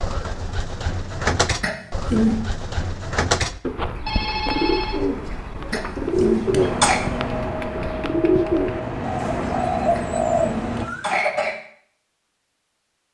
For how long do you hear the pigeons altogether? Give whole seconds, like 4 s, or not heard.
11 s.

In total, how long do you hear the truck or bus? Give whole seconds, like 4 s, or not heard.
4 s.